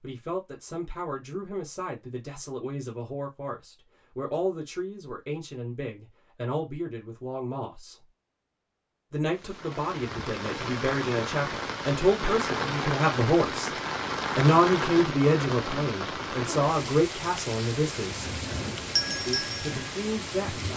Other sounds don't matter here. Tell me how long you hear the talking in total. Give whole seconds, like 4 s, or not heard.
18 s.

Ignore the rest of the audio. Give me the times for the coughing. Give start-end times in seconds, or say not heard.
not heard.